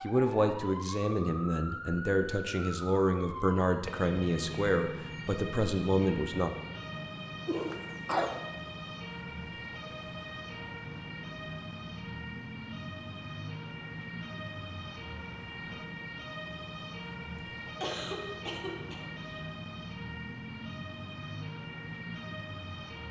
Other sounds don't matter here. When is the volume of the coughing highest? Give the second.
8 s.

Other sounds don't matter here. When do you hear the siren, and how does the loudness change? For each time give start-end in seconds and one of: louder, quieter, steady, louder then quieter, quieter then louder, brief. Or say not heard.
0.0-23.0 steady.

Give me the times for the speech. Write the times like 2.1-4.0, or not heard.
0.0-6.5.